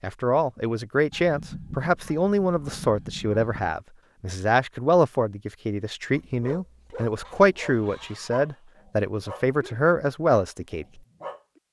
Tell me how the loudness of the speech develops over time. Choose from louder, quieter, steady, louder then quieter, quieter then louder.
steady.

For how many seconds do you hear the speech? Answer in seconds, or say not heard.
11 s.